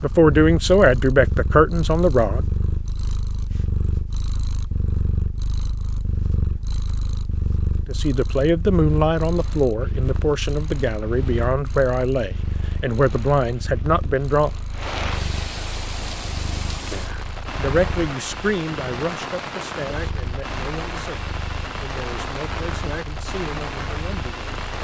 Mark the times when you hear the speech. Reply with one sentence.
The speech can be heard from 0.0 to 2.5 s, from 7.8 to 14.5 s and from 16.9 to 24.6 s.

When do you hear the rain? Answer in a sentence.
The rain can be heard from 8.8 to 24.7 s.